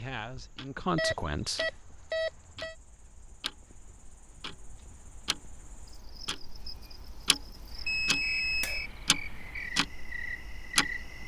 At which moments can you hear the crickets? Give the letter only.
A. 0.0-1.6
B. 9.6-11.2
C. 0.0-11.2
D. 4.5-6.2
C.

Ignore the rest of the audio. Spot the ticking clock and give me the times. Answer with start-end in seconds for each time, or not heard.
0.2-11.2.